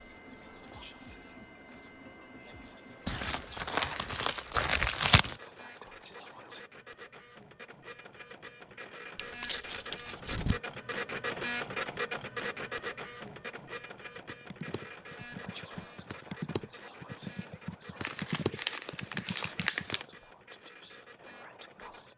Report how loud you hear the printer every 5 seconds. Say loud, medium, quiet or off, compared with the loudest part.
quiet, medium, loud, quiet, quiet.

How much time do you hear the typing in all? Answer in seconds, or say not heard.
6 s.